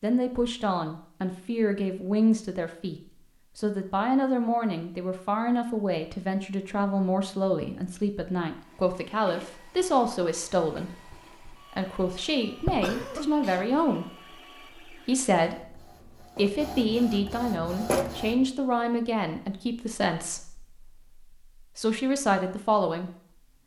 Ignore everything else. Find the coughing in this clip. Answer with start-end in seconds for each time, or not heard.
12.6-13.9.